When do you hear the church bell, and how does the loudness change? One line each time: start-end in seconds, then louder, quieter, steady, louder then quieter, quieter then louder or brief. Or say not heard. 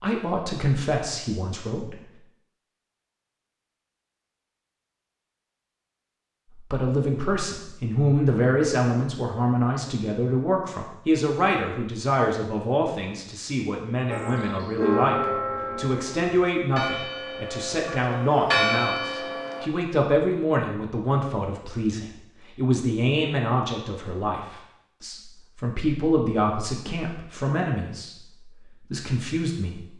14.1-19.7 quieter then louder.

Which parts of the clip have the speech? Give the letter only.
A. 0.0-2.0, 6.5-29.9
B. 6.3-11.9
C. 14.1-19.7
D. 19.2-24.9
A.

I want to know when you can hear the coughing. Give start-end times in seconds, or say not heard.
not heard.